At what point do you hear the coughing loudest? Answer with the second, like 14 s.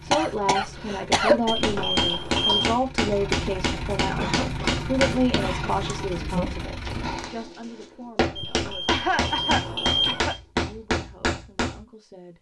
1 s.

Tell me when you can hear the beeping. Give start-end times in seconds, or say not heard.
1.4-2.7, 8.3-10.4.